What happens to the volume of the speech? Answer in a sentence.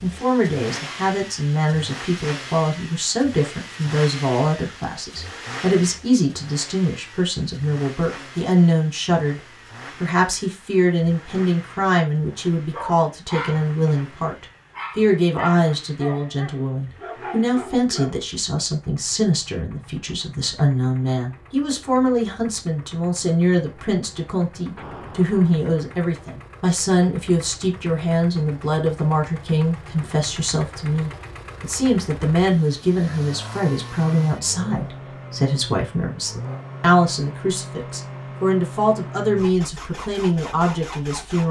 The loudness of the speech stays about the same.